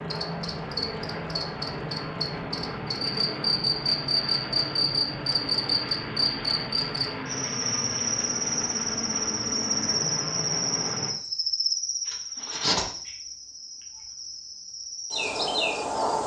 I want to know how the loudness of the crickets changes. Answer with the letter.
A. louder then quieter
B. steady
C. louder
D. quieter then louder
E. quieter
A.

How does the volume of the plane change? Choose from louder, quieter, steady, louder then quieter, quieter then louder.
steady.